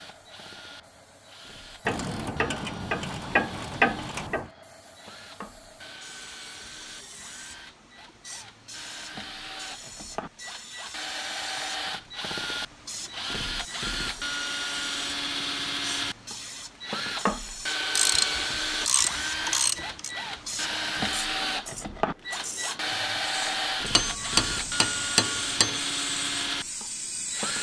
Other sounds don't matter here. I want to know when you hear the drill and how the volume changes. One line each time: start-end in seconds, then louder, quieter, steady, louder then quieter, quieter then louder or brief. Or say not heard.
0.0-27.5 louder.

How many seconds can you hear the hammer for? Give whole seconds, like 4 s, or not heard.
2 s.